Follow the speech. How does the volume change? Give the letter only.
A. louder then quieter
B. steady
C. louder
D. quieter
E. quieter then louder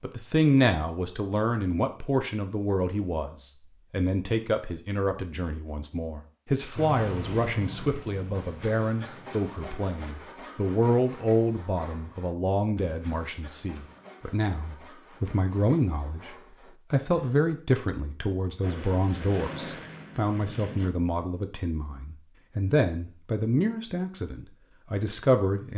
B.